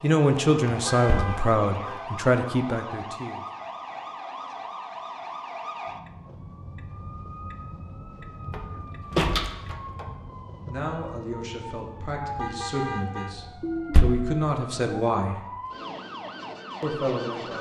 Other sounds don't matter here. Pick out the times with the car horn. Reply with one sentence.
You can hear the car horn from 0.7 to 2.1 s and from 12.3 to 13.3 s.